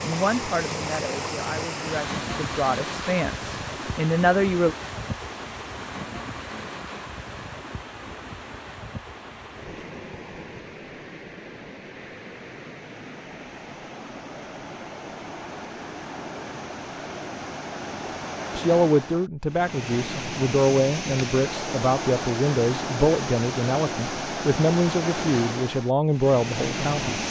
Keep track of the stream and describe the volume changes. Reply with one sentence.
The volume of the stream goes down, then up.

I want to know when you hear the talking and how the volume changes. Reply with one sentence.
You can hear the talking from 0.0 to 4.8 s, getting louder; and from 18.6 to 27.2 s, at a steady volume.